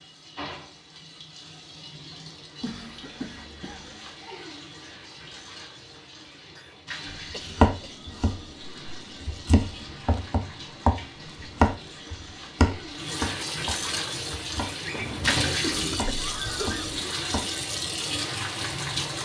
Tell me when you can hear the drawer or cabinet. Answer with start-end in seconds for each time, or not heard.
14.8-15.7.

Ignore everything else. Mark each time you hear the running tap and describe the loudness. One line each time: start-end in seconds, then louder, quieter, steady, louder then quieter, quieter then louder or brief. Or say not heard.
0.0-19.1 louder.